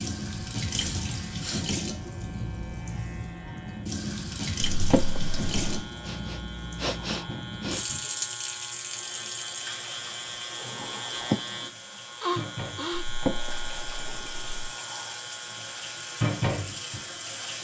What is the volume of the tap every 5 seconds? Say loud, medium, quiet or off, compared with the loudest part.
loud, loud, medium, loud.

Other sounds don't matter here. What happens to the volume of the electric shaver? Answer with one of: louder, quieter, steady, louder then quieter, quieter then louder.
louder then quieter.